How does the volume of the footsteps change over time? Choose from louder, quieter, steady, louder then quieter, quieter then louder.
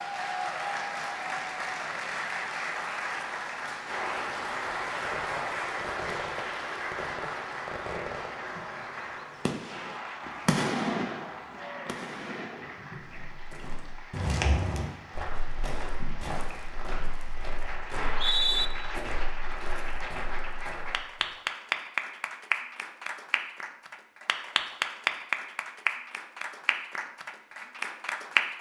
quieter.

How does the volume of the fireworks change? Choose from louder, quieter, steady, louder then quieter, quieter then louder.
louder then quieter.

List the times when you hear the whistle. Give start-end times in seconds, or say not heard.
17.9-18.7.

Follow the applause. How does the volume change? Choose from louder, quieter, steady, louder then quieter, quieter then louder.
quieter then louder.